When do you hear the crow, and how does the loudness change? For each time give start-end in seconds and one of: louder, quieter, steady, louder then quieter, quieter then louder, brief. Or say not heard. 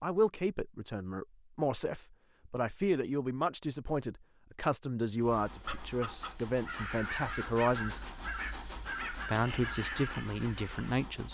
5.5-10.9 steady.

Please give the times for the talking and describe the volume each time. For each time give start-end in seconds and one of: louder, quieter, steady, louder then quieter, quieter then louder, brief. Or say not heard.
0.0-8.1 steady
9.2-11.2 brief.